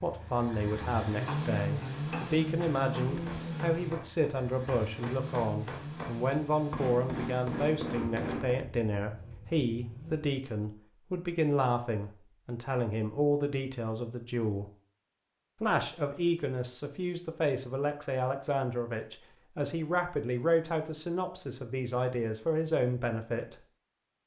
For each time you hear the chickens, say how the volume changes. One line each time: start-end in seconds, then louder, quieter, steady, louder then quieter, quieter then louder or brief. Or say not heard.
not heard.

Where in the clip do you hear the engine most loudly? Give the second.
2 s.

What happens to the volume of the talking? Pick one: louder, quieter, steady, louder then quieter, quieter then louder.
steady.